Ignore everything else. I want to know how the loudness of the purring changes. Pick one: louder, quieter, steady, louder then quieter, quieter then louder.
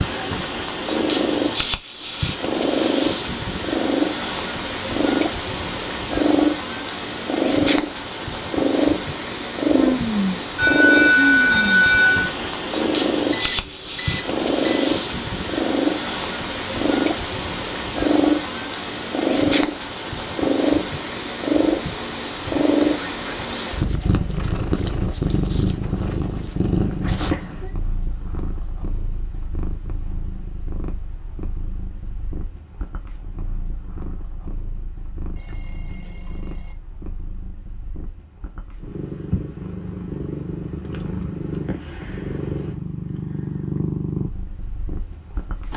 quieter then louder.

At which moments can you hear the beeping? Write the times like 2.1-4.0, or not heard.
13.3-14.9, 35.4-36.8.